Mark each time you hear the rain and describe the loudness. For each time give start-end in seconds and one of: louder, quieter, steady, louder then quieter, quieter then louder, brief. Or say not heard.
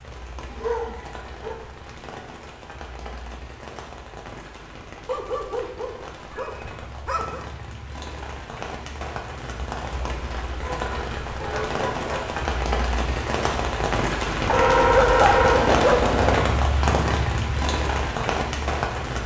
0.0-19.2 louder.